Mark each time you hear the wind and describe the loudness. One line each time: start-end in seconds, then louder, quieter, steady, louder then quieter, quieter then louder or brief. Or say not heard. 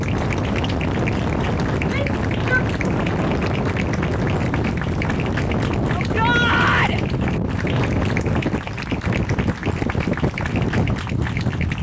0.0-11.7 steady.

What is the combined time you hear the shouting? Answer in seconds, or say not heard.
2 s.